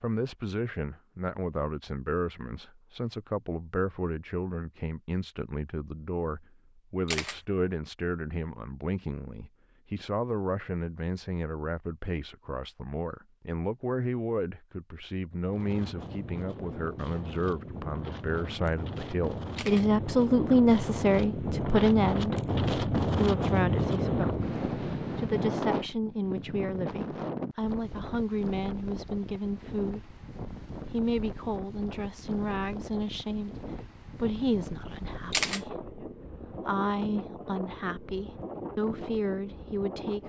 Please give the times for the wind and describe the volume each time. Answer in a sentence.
The wind can be heard from 15.4 to 40.2 s, getting louder then quieter.